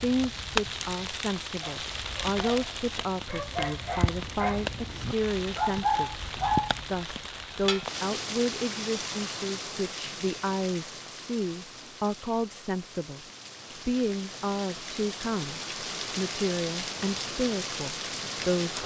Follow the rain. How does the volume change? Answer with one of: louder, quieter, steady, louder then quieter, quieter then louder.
quieter then louder.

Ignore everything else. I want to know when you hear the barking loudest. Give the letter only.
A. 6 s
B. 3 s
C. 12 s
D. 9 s
A.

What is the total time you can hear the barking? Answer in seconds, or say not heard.
7 s.